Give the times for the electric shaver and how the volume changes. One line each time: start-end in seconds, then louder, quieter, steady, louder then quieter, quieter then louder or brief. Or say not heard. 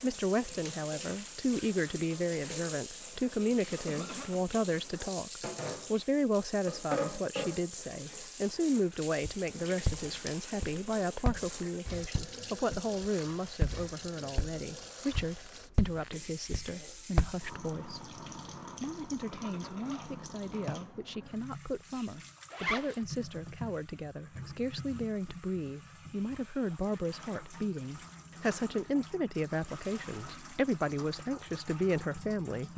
not heard.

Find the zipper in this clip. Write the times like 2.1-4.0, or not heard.
22.5-23.0.